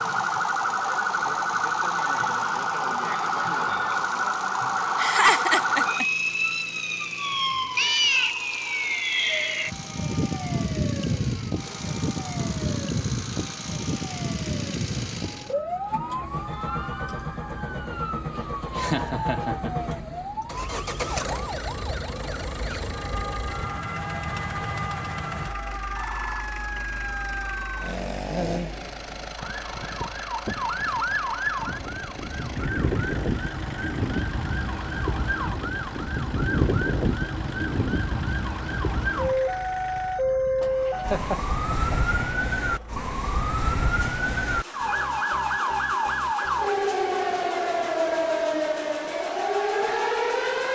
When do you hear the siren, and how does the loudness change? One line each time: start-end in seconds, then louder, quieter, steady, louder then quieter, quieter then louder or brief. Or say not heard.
0.0-50.7 quieter then louder.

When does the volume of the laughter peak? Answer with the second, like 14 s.
5 s.